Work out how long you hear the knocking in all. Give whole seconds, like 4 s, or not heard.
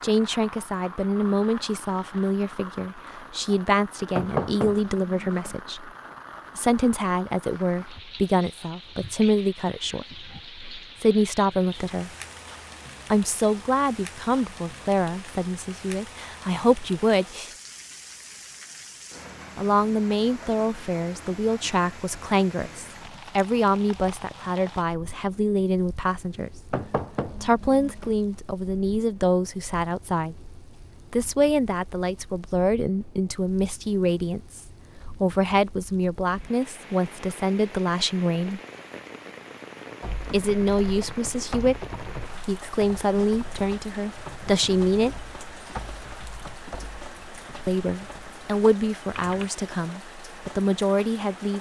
3 s.